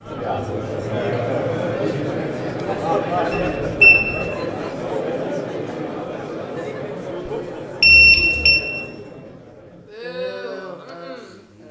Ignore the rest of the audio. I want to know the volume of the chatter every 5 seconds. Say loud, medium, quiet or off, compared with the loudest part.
loud, medium, medium.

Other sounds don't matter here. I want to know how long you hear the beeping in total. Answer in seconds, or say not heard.
2 s.